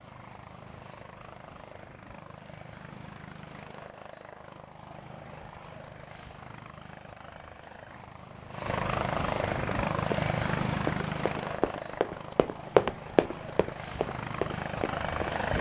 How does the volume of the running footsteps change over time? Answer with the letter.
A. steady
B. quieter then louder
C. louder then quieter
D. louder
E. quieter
C.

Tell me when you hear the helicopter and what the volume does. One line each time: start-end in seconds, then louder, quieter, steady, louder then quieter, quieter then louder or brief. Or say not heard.
0.0-15.5 louder then quieter.